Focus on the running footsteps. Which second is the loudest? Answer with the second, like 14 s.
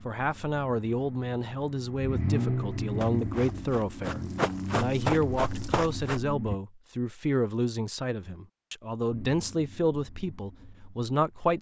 5 s.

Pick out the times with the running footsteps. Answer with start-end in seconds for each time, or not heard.
2.8-6.2.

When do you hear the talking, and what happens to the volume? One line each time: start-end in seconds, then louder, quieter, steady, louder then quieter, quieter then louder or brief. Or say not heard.
0.1-11.5 steady.